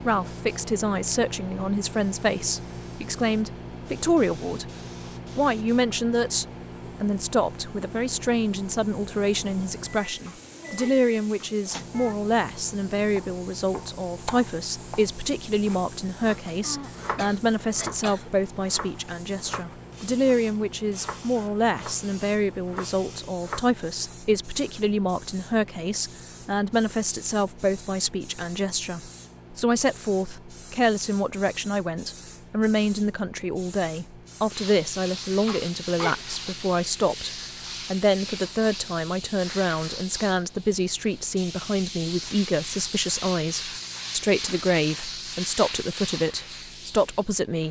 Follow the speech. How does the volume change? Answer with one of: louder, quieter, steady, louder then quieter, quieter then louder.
steady.